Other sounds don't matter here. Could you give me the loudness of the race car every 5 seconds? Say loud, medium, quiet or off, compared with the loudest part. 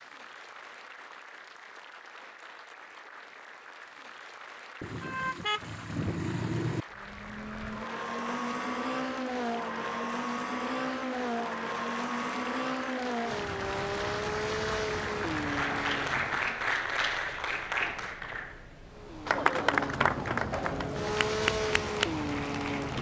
off, loud, loud, medium, loud.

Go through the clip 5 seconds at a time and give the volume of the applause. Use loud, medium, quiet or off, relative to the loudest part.
quiet, quiet, medium, loud, loud.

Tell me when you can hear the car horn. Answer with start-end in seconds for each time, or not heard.
4.8-6.8.